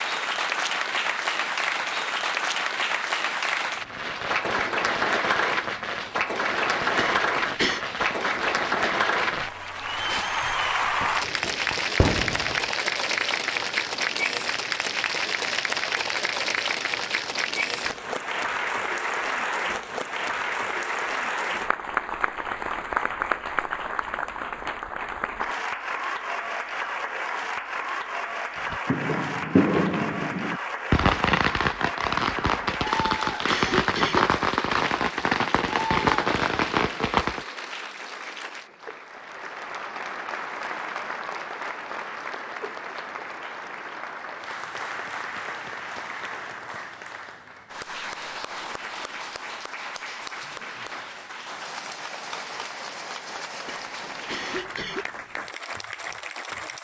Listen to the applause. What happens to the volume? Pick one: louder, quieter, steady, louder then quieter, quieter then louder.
quieter.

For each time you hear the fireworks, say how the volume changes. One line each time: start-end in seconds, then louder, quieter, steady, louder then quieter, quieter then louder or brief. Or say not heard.
3.8-12.8 steady
28.7-37.4 steady.